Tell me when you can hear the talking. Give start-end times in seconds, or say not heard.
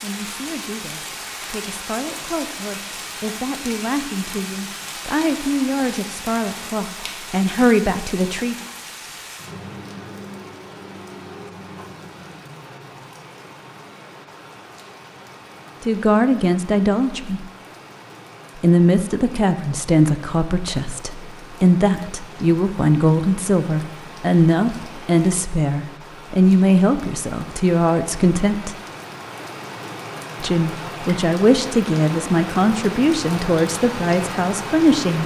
0.0-8.6, 15.8-17.4, 18.6-28.8, 30.4-35.2.